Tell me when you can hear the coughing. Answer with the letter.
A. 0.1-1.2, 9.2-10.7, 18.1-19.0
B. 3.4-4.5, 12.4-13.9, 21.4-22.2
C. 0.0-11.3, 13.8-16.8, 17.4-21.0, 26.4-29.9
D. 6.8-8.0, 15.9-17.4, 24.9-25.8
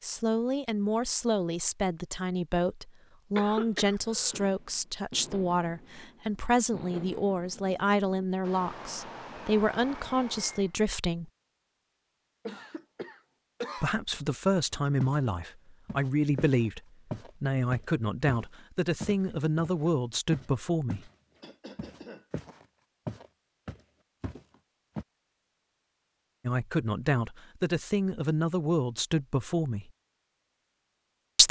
B.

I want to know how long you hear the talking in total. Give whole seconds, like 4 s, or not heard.
21 s.